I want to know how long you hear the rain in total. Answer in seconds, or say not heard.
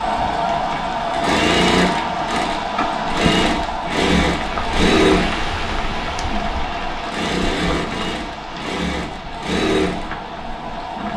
11 s.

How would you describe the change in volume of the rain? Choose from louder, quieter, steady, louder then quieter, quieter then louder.
louder then quieter.